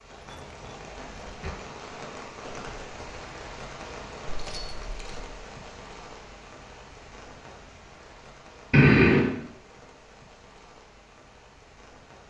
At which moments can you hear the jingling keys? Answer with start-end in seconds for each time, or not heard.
0.2-1.6, 4.2-5.3, 8.7-9.3.